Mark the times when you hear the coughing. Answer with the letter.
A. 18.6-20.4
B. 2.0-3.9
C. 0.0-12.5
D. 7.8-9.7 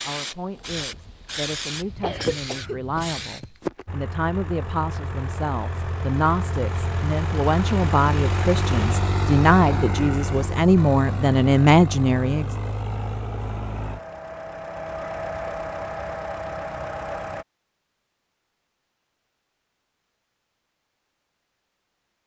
B.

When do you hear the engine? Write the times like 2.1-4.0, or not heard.
3.9-17.4.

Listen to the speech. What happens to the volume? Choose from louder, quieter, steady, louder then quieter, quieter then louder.
louder.